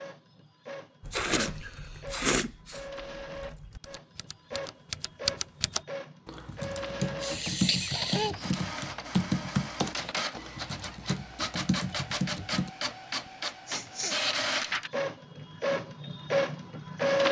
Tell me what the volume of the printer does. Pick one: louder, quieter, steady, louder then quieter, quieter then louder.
louder.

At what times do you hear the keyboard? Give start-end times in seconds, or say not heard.
1.0-12.7.